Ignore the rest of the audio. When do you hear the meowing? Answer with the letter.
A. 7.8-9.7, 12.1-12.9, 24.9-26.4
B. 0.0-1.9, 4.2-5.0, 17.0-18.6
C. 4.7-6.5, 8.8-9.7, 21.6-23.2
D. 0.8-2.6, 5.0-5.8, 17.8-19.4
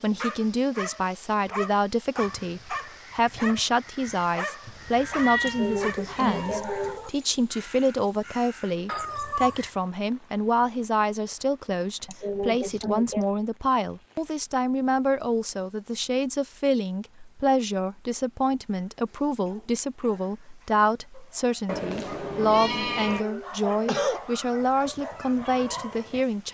C.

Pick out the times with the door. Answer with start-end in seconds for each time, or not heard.
not heard.